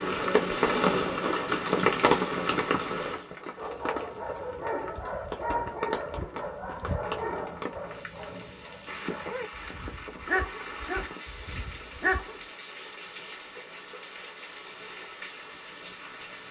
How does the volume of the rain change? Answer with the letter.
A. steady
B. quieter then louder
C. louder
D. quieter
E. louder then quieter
D.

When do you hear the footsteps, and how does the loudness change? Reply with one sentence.
You can't hear the footsteps here.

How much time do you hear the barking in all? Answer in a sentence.
The barking can be heard for 9 seconds in total.